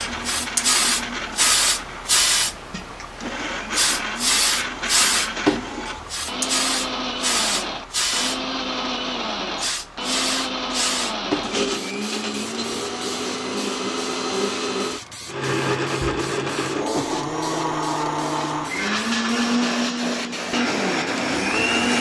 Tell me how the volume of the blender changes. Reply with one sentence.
The volume of the blender goes up.